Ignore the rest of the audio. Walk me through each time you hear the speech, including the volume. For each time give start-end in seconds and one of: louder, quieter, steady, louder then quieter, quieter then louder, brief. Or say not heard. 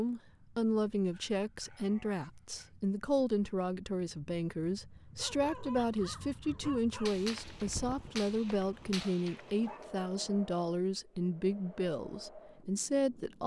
0.0-13.4 steady.